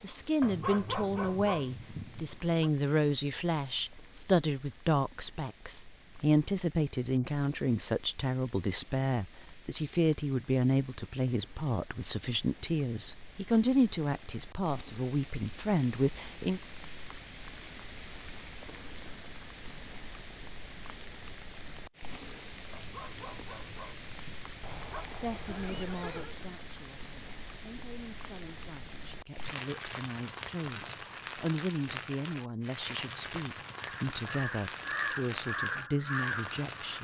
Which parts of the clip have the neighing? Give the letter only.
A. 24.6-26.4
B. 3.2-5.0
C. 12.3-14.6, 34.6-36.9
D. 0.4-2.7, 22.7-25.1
A.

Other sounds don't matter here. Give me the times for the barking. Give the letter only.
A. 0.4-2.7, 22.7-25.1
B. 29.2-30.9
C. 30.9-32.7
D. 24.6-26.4
A.